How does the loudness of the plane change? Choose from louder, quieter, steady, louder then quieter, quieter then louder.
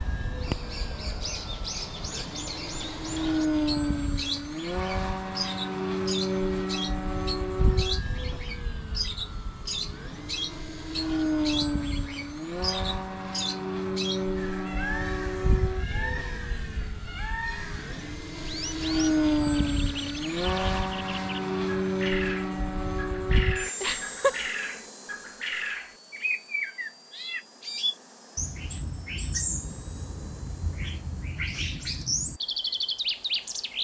quieter.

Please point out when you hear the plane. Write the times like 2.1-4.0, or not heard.
0.0-33.7.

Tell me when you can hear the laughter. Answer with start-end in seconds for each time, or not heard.
23.8-24.5.